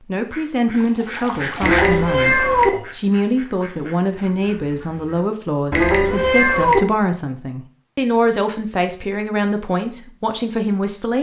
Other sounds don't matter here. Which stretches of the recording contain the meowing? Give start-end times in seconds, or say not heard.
1.6-2.7, 5.7-6.8.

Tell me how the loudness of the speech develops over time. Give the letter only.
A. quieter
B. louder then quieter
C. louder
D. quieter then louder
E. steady
E.